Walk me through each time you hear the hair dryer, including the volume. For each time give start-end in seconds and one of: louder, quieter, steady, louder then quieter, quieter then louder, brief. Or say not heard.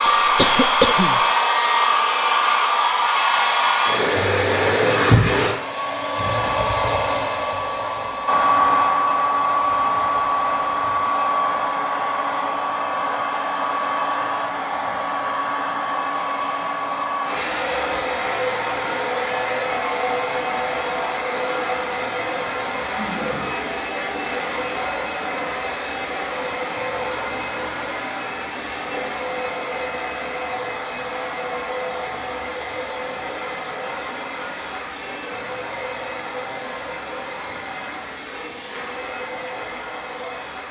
0.0-40.6 quieter.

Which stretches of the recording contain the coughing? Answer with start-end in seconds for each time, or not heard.
0.1-1.2.